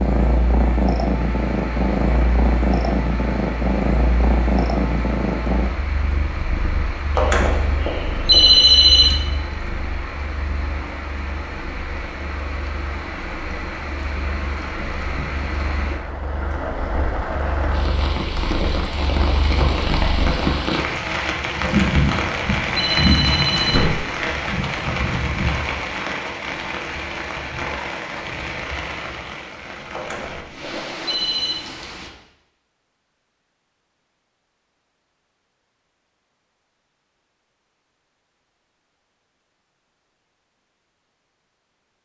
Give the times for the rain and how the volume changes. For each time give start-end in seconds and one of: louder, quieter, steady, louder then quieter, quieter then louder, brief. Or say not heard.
0.0-32.1 louder then quieter.